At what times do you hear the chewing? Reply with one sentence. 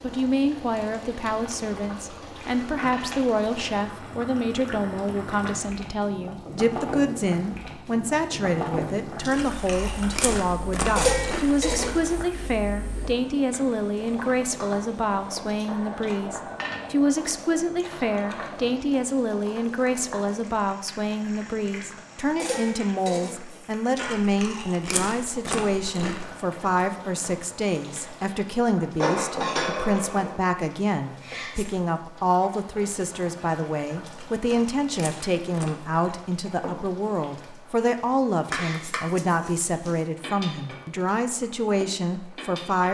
You can hear the chewing from 9.2 to 11.9 s, from 23.9 to 26.4 s and from 34.0 to 36.0 s.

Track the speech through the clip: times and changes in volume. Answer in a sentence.
You can hear the speech from 0.0 to 42.8 s, at a steady volume.